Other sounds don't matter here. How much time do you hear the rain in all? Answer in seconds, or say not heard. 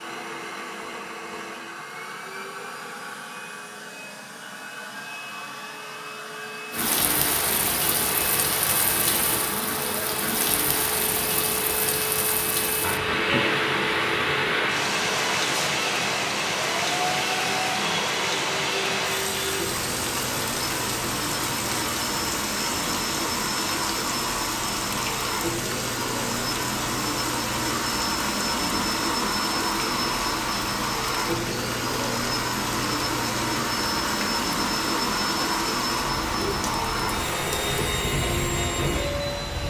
33 s.